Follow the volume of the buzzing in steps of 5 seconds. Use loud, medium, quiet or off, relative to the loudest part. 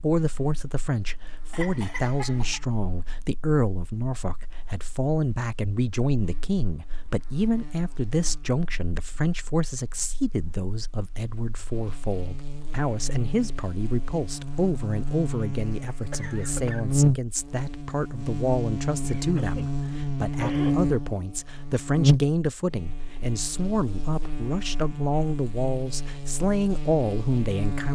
quiet, quiet, quiet, loud, loud, medium.